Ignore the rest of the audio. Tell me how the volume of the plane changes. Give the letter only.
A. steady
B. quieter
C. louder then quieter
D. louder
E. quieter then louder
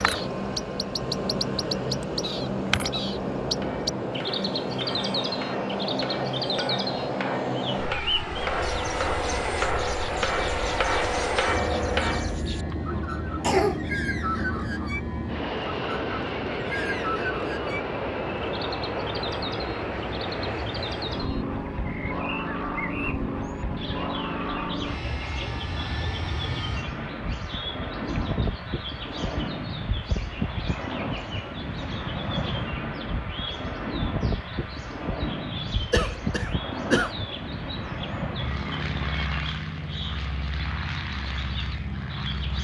A.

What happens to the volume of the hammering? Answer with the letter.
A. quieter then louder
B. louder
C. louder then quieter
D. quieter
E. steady
B.